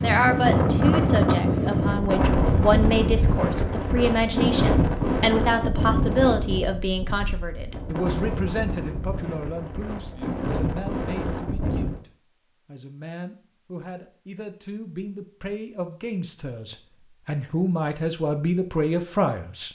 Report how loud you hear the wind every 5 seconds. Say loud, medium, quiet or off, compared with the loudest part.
loud, medium, medium, off.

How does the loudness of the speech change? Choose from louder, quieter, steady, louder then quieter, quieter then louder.
quieter then louder.